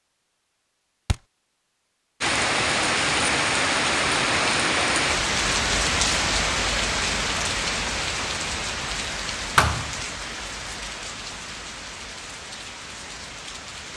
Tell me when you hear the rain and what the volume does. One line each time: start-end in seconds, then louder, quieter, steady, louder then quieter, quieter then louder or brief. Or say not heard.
2.2-13.9 quieter.